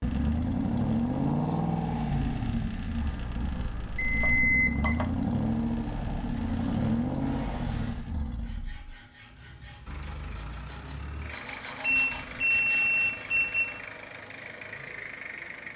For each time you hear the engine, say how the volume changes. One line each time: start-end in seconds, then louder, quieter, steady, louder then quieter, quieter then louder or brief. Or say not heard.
0.0-15.7 quieter.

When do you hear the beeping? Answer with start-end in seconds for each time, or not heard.
3.6-5.0, 11.8-13.7.